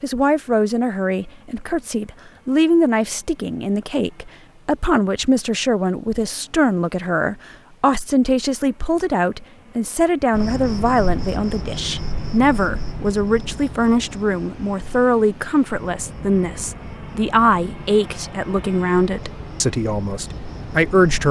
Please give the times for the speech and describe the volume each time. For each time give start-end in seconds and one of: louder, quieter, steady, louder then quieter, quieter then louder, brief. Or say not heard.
0.0-21.2 steady.